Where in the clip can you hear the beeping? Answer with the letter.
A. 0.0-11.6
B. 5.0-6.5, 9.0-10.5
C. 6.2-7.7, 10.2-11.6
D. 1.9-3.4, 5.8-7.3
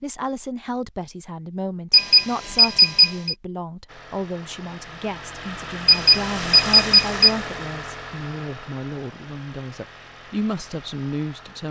D.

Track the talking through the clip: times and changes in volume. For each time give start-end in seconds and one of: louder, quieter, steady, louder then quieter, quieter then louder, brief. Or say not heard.
0.0-11.6 steady.